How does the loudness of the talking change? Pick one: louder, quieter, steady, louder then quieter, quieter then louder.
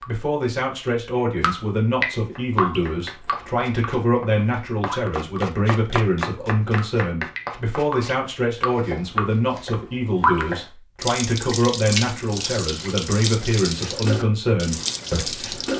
steady.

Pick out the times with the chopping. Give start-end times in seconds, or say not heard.
2.1-10.7.